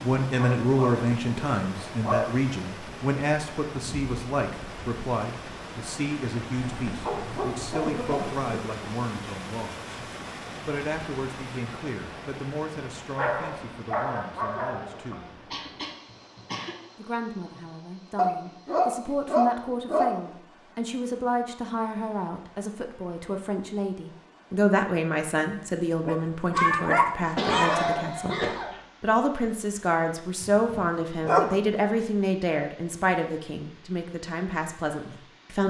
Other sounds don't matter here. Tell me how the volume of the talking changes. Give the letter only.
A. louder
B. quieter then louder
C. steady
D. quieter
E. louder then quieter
B.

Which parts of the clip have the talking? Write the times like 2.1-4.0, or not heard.
0.0-9.9, 10.7-15.2, 16.9-28.4, 29.0-35.6.